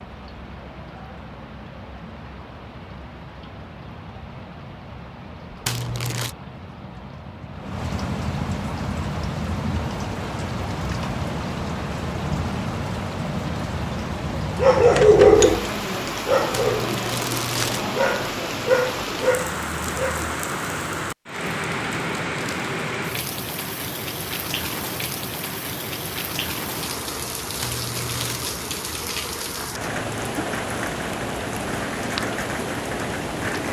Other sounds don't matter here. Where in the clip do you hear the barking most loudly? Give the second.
15 s.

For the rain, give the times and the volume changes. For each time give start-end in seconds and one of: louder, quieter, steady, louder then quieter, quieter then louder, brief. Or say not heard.
0.0-33.6 louder.